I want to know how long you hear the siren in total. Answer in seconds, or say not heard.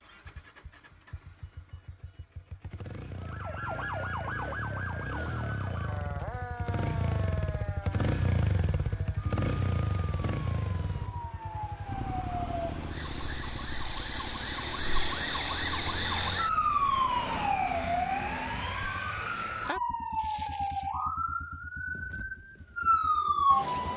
21 s.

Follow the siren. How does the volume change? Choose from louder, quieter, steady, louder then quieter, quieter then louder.
quieter then louder.